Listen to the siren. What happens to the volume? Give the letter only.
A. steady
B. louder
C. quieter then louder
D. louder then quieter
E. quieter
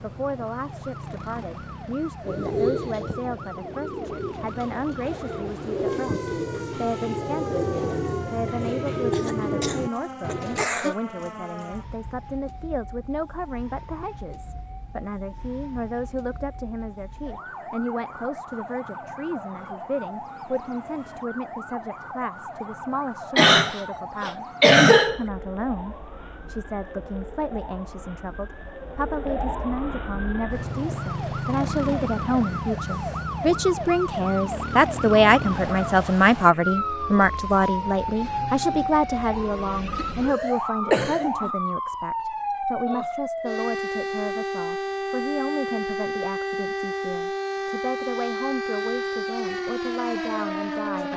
B.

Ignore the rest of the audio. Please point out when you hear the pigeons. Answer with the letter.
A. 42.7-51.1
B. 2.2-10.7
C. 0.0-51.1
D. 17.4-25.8
B.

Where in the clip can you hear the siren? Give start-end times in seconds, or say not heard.
0.0-51.1.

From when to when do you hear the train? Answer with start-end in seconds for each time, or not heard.
not heard.